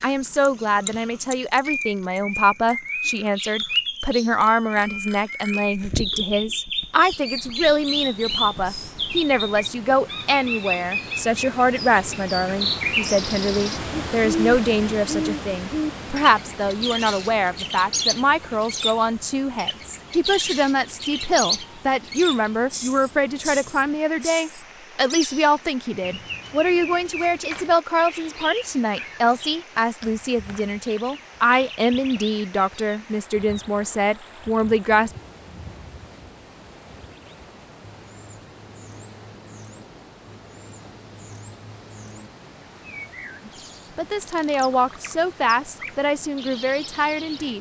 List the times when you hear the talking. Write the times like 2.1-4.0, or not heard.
0.0-35.1, 43.5-47.5.